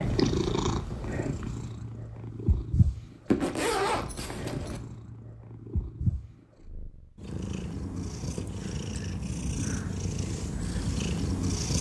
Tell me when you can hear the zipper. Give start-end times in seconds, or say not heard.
3.2-4.8.